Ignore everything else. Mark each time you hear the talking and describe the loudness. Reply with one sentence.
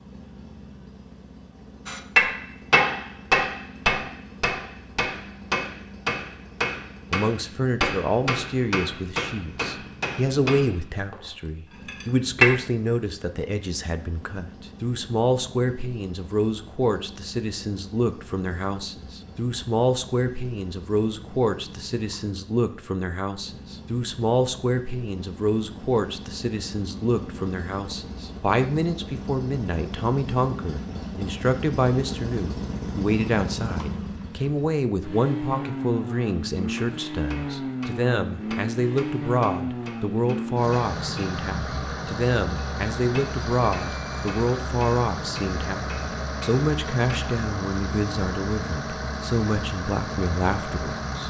The talking can be heard from 7.1 to 51.2 s, at a steady volume.